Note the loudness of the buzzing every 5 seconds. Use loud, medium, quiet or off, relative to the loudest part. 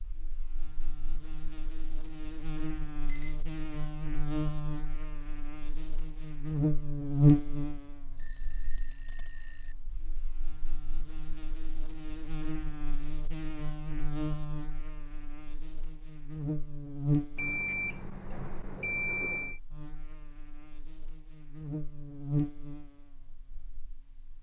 medium, loud, medium, medium, medium.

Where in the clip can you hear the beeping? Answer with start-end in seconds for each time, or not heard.
3.0-3.5, 8.2-9.8, 17.4-19.6.